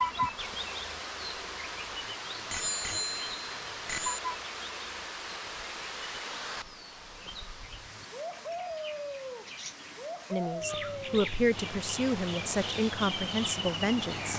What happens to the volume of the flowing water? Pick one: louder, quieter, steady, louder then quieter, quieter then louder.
steady.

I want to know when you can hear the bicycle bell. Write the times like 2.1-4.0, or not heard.
2.5-4.2.